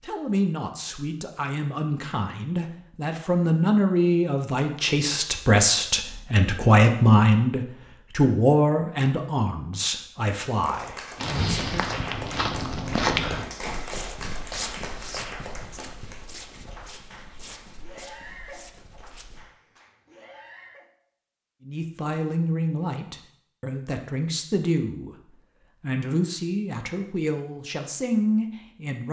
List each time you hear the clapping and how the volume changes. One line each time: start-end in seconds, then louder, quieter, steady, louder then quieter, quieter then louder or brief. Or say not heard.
10.5-20.9 quieter.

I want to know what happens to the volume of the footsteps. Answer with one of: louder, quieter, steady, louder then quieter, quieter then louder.
quieter.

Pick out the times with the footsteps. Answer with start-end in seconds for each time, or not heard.
11.2-19.4.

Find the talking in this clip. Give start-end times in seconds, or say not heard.
0.0-11.9, 21.6-29.0.